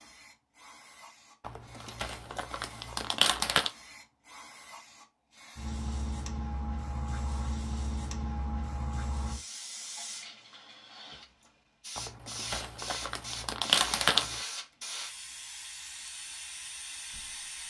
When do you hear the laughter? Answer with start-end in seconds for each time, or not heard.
not heard.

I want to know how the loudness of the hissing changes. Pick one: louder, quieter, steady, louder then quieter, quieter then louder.
louder.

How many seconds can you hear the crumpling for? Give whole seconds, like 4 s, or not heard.
5 s.